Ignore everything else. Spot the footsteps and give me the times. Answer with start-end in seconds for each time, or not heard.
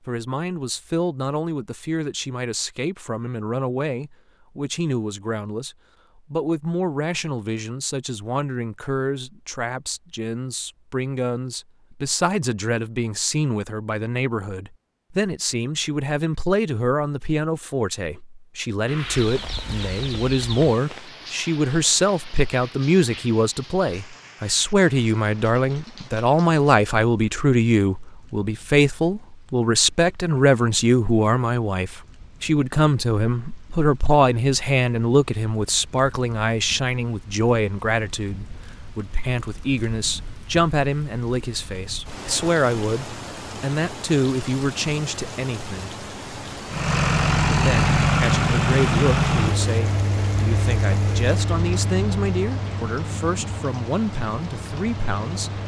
not heard.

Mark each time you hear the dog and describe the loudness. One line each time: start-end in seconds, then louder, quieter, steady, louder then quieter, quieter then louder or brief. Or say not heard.
not heard.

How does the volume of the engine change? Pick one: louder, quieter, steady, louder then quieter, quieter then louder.
quieter.